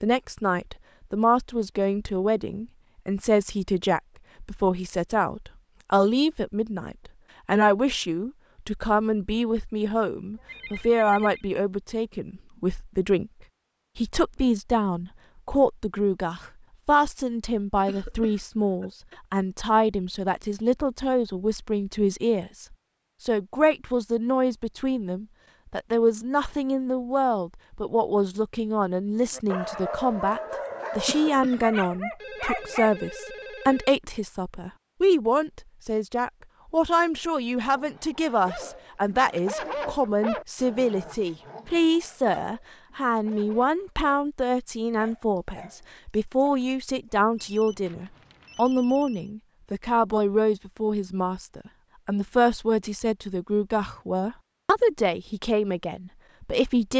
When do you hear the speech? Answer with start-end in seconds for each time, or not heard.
0.0-13.3, 13.9-56.9.